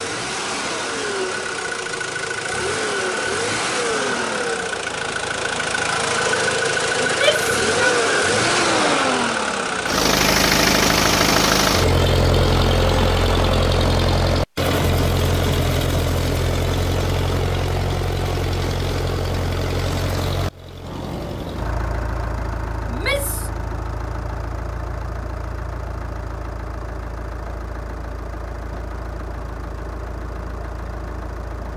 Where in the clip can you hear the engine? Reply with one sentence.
The engine can be heard from 0.0 to 31.7 s.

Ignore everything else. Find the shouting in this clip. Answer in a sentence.
The shouting can be heard from 7.0 to 8.0 s and from 22.9 to 23.5 s.